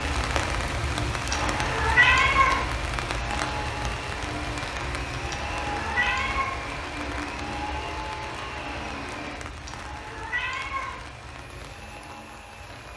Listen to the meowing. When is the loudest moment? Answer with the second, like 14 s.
2 s.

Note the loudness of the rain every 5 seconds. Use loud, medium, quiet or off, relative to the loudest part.
loud, medium, quiet.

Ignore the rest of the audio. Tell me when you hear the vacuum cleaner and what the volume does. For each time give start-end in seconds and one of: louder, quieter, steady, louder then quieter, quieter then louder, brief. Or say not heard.
0.0-12.9 quieter.